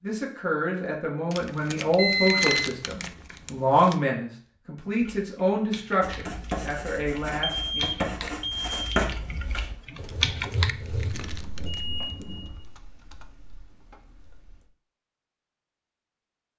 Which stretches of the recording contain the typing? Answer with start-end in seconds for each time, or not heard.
5.0-14.7.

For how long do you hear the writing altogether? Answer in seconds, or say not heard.
5 s.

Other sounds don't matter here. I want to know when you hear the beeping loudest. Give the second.
2 s.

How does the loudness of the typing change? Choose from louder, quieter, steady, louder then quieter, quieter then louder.
louder then quieter.